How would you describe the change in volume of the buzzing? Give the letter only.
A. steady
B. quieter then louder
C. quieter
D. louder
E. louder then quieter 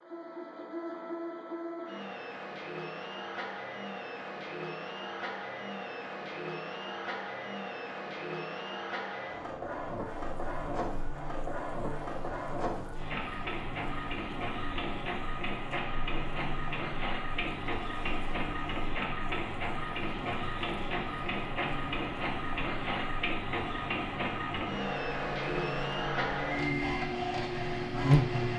D.